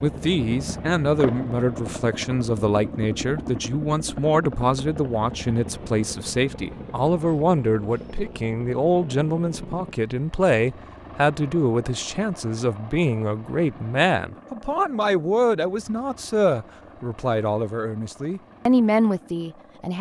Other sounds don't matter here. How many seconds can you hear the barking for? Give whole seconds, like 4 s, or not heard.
not heard.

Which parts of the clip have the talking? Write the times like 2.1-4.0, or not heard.
0.0-19.9.